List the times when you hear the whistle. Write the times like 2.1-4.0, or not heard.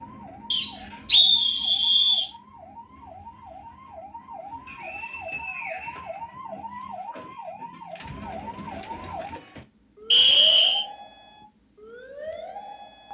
0.5-2.3, 4.7-6.2, 10.1-10.8.